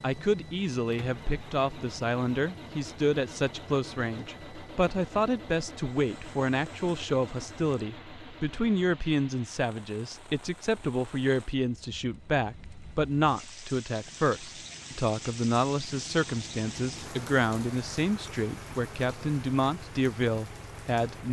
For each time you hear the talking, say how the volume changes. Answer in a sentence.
You can hear the talking from 0.0 to 21.2 s, at a steady volume.